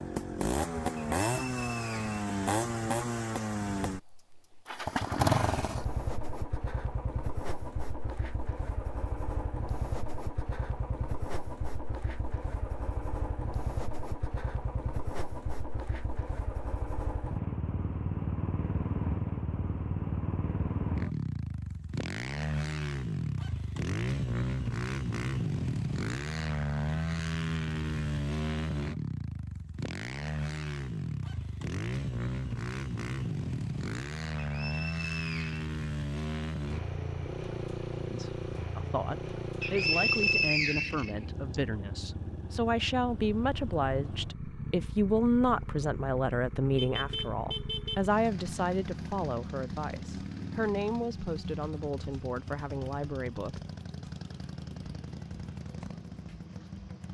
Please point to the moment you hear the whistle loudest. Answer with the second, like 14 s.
40 s.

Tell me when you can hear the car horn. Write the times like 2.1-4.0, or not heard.
46.8-48.1.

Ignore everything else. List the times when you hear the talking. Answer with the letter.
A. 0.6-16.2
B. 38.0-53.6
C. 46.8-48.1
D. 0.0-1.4
B.